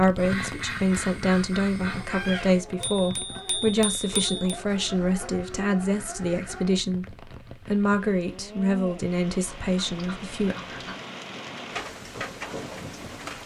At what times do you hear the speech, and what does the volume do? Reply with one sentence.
You can hear the speech from 0.0 to 10.6 s, at a steady volume.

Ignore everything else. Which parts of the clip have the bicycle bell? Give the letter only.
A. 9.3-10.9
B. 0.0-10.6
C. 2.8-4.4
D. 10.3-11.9
C.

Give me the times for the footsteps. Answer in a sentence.
The footsteps can't be heard in this clip.